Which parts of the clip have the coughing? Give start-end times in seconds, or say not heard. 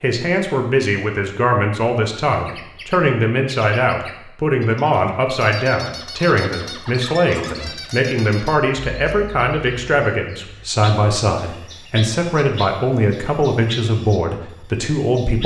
not heard.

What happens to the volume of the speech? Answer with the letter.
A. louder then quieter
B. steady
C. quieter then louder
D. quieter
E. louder
B.